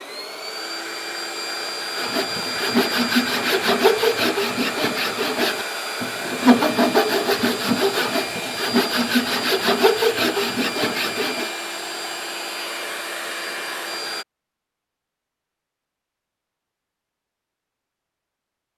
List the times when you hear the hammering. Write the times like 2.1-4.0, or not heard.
not heard.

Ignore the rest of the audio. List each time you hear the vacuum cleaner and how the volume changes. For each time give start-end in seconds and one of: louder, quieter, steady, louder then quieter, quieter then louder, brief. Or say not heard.
0.0-14.2 steady.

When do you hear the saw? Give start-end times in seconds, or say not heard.
1.9-11.5.